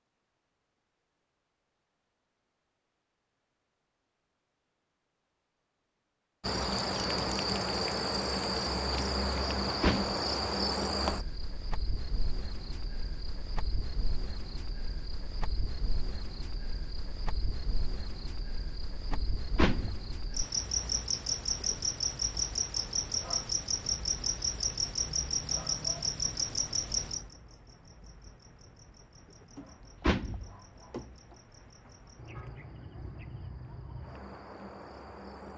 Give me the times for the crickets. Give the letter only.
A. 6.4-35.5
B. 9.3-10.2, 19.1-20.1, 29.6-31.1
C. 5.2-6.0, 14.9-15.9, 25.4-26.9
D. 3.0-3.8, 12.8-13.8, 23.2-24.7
A.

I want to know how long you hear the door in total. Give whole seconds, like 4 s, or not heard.
3 s.